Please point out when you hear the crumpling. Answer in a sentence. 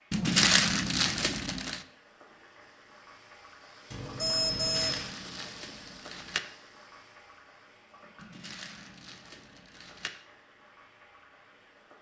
The crumpling can be heard from 0.1 to 1.9 s, from 4.5 to 6.4 s and from 8.2 to 10.1 s.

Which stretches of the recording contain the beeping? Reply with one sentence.
The beeping can be heard from 3.9 to 5.0 s.